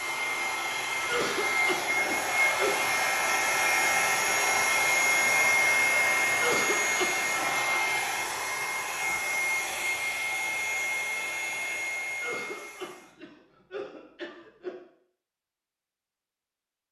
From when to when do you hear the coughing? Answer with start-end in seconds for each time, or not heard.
1.1-2.9, 6.4-7.5, 12.2-14.8.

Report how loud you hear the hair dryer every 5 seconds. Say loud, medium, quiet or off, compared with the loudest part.
loud, loud, medium, off.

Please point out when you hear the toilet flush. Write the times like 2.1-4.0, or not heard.
not heard.